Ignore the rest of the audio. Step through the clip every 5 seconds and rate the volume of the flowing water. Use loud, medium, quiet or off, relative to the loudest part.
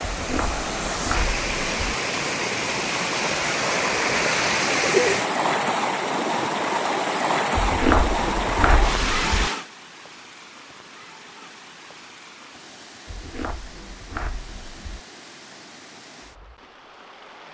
loud, loud, quiet, quiet.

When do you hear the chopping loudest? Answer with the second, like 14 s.
8 s.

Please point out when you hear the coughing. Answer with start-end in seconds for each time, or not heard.
not heard.